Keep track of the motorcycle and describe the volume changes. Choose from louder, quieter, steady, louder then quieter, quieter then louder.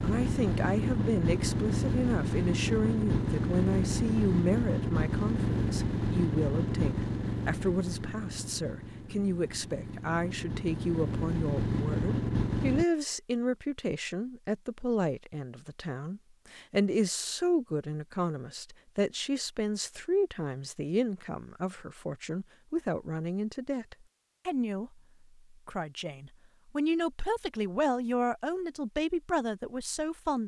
quieter then louder.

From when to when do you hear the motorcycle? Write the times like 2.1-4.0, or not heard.
0.0-12.8.